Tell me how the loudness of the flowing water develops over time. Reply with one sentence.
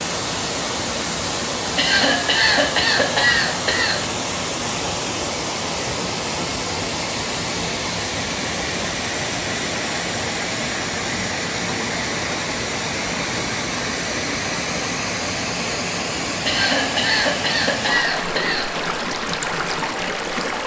The volume of the flowing water stays about the same.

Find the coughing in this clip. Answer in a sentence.
The coughing can be heard from 1.8 to 4.0 s and from 16.4 to 18.7 s.